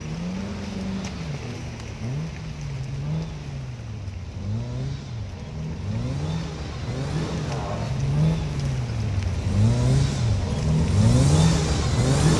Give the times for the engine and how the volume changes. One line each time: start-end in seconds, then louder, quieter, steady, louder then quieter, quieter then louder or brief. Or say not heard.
0.0-12.3 louder.